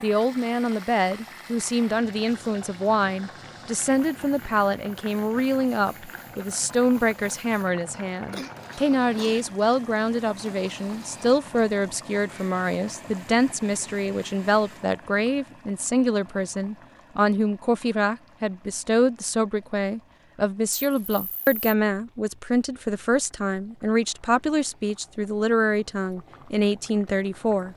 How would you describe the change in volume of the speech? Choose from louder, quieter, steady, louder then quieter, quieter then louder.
steady.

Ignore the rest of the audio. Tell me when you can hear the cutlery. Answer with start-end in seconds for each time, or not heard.
not heard.